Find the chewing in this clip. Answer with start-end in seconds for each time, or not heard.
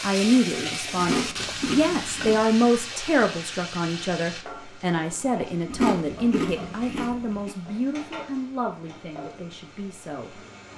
0.9-2.5, 5.7-7.5.